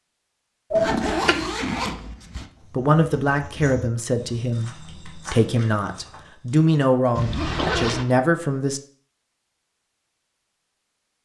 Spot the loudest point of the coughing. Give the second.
1 s.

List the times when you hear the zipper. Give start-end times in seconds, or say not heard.
0.8-2.5, 7.2-8.1.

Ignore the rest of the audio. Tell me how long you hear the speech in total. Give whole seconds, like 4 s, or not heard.
6 s.